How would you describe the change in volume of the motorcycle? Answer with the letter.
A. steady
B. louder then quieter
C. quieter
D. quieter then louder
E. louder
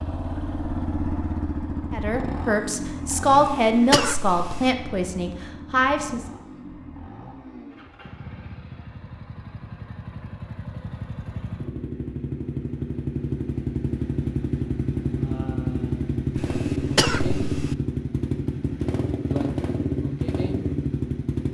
D.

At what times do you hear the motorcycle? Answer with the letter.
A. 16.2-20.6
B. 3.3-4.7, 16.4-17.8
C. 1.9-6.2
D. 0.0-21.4
D.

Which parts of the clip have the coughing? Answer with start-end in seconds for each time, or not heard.
3.3-4.7, 16.4-17.8.